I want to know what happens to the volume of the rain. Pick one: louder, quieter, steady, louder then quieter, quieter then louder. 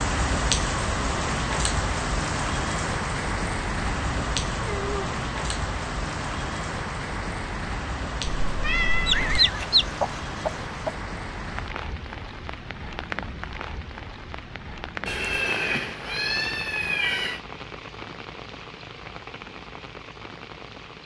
quieter.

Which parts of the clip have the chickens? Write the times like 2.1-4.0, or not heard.
9.1-10.9.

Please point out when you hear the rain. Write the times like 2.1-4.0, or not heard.
0.0-21.0.